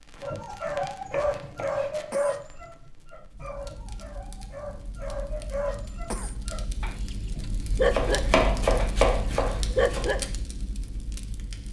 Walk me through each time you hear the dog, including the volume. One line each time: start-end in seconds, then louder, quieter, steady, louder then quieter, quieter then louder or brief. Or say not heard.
0.2-10.3 quieter then louder.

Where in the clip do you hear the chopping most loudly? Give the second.
9 s.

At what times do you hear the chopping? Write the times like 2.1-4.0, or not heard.
1.1-1.9, 7.9-10.1.